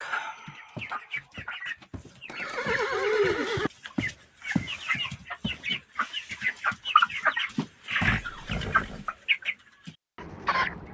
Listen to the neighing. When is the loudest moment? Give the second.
3 s.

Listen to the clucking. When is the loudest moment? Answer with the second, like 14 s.
7 s.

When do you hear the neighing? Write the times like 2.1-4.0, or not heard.
2.2-3.7, 8.0-9.1.